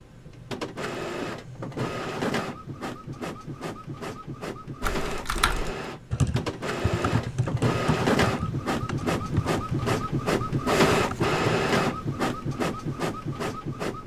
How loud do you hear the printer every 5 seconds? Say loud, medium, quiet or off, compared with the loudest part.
medium, loud, loud.